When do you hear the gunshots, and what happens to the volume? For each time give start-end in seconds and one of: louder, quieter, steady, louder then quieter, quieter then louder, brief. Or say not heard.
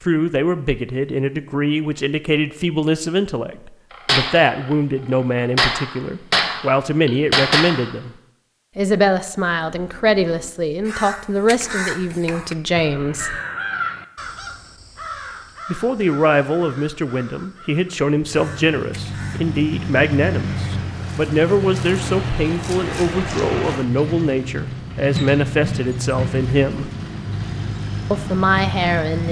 3.9-7.9 louder.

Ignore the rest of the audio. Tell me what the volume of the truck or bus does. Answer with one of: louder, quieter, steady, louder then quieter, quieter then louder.
steady.